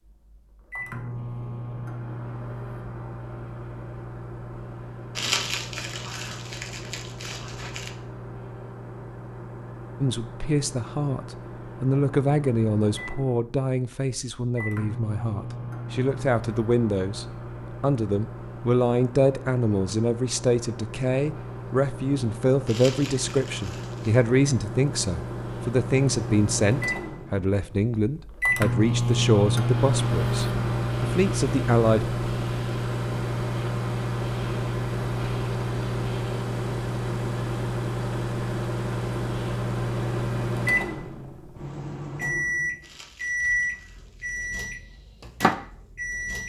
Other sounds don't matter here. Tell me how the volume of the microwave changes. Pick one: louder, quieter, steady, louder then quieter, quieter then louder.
louder.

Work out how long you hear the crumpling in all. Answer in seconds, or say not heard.
6 s.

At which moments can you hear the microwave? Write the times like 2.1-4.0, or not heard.
0.0-46.4.